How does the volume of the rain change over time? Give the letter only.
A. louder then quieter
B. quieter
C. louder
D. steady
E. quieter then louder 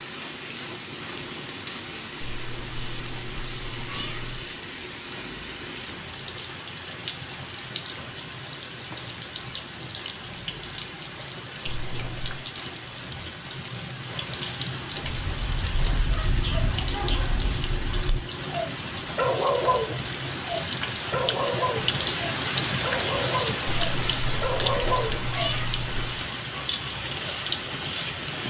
C.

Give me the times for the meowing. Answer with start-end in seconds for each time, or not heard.
2.2-4.5, 11.7-12.4, 23.6-26.2.